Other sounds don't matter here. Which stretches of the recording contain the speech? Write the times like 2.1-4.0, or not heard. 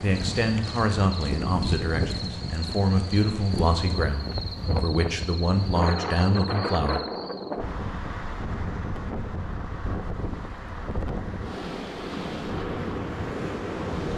0.0-7.0.